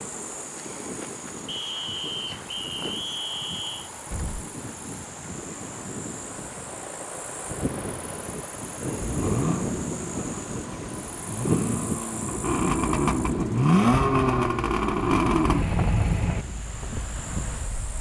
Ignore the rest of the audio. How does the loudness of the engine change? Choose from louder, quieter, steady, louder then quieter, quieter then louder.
louder.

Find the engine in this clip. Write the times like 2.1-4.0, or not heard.
9.0-16.4.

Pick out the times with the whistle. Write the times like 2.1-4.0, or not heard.
1.4-3.9.